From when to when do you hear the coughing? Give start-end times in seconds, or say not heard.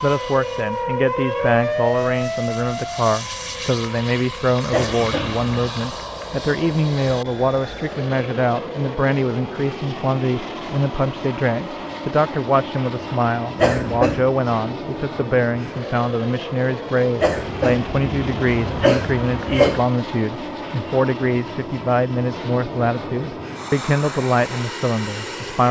4.7-5.5, 13.6-14.2, 17.2-19.9.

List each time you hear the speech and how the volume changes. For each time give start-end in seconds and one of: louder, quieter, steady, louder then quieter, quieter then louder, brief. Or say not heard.
0.0-25.6 steady.